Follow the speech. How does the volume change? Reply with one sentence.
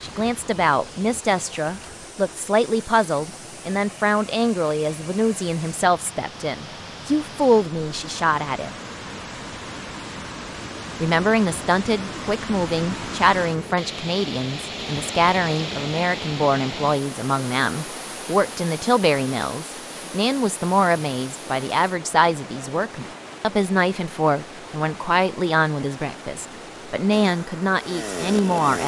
The loudness of the speech stays about the same.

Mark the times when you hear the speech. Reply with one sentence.
The speech can be heard from 0.0 to 8.8 s and from 11.0 to 28.8 s.